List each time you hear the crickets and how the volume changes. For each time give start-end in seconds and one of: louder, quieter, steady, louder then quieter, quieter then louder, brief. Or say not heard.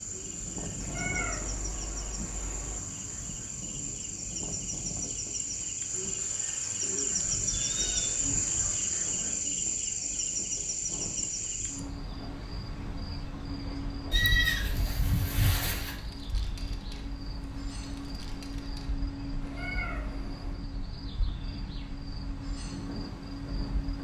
0.0-23.9 louder then quieter.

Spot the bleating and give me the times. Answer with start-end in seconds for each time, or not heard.
7.2-8.8, 14.1-15.9.